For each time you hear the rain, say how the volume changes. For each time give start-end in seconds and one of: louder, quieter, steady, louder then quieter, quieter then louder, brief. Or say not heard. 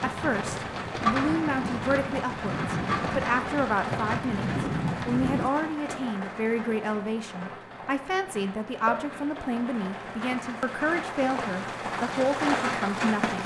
0.0-13.4 quieter then louder.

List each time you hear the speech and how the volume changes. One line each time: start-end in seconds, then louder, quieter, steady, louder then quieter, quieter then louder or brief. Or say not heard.
0.0-13.4 steady.